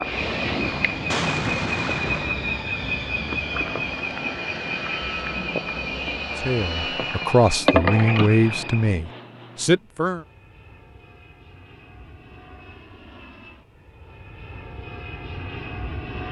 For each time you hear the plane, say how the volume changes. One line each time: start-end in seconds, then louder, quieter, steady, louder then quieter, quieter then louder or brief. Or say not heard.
0.0-16.2 quieter then louder.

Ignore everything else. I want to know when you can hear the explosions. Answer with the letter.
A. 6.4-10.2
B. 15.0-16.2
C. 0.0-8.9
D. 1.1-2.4
D.